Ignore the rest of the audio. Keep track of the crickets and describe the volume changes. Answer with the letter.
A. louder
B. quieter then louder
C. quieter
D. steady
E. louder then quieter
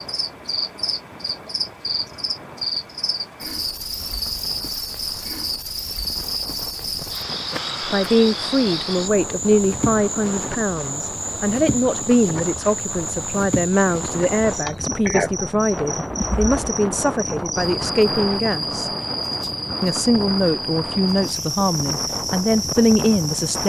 D.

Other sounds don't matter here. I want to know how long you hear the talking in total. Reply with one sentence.
The talking can be heard for 15 seconds in total.